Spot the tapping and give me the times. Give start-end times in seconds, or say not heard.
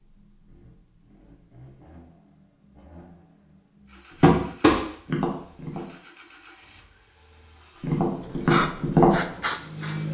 4.2-5.9, 7.8-10.0.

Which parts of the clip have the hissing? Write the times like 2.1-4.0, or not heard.
8.4-10.0.